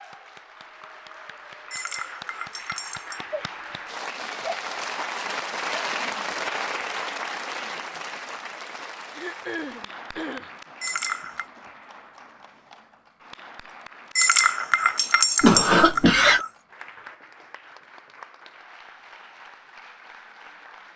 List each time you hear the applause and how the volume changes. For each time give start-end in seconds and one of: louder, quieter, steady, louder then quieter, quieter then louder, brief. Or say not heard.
0.0-20.9 louder then quieter.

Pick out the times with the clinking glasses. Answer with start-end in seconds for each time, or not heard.
1.7-3.2, 10.8-11.4, 14.2-16.5.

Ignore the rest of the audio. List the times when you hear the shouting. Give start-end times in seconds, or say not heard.
not heard.